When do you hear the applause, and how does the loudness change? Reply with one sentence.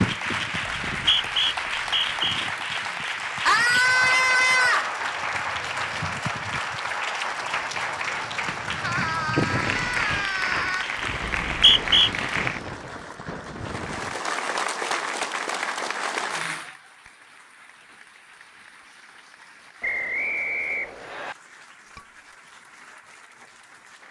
The applause can be heard from 0.0 to 24.0 s, getting quieter.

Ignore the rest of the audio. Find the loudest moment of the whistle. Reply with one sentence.
The volume of the whistle peaks at 12 seconds.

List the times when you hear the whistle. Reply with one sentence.
You can hear the whistle from 0.9 to 2.4 s, from 11.2 to 12.1 s and from 19.8 to 21.4 s.